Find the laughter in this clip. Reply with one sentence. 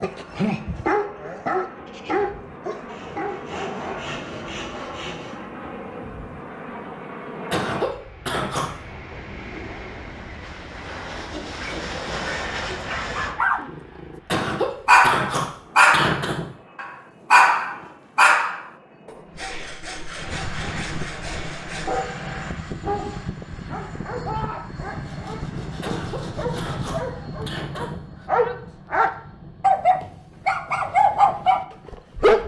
You can hear the laughter from 7.5 to 8.7 s, from 14.2 to 16.4 s and from 25.8 to 28.2 s.